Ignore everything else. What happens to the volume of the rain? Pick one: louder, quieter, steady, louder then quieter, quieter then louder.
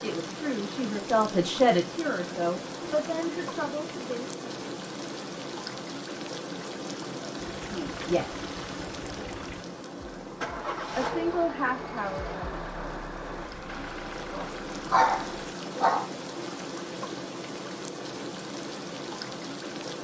steady.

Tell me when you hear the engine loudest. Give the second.
11 s.